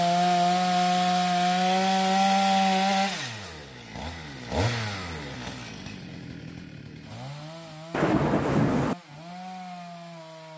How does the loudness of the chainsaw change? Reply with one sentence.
The volume of the chainsaw goes down.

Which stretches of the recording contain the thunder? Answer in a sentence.
The thunder can be heard from 7.9 to 8.9 s.